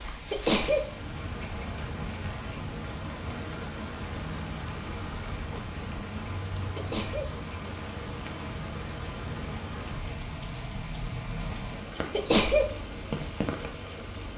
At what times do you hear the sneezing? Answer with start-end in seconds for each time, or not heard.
0.3-0.8, 6.8-7.3, 12.1-12.7.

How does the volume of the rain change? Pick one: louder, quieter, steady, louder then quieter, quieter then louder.
steady.